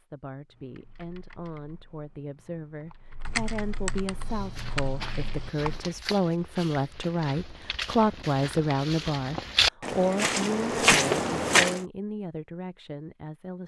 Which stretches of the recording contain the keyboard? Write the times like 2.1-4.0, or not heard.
0.5-5.8.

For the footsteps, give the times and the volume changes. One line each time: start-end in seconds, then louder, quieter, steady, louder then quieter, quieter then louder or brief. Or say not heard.
4.1-11.8 louder.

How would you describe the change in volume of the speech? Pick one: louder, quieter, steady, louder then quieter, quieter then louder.
louder then quieter.